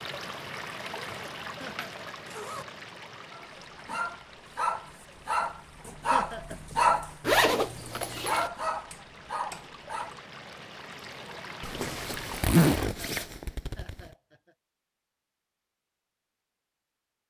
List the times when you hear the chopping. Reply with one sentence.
You can't hear the chopping here.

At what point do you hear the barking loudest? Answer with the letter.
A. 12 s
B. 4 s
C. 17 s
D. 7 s
D.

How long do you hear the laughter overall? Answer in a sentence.
The laughter can be heard for 3 seconds in total.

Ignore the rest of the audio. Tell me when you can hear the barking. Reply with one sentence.
You can hear the barking from 3.3 to 10.2 s.